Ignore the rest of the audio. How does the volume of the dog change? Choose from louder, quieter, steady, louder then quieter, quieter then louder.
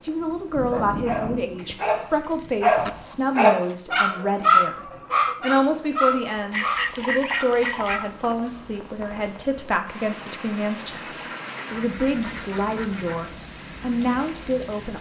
louder then quieter.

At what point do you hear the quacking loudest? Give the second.
7 s.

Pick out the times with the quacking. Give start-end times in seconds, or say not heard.
1.6-3.0, 6.5-8.1, 10.9-13.3.